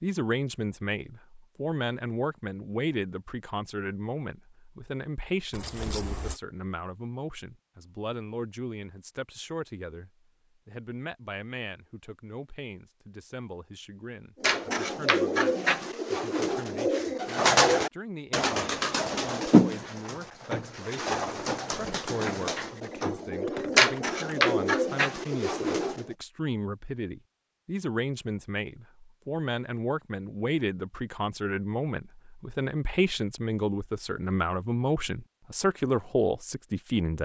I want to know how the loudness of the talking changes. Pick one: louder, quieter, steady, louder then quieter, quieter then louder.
quieter then louder.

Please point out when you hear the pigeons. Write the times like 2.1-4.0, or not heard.
14.4-26.1.